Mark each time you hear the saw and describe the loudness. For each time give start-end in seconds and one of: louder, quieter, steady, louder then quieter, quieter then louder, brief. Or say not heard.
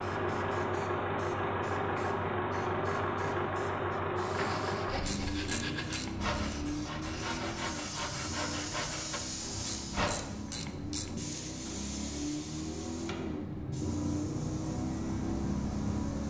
4.3-10.2 steady.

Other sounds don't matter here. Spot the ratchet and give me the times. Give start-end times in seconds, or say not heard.
4.9-6.3, 9.4-11.3.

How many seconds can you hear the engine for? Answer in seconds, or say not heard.
16 s.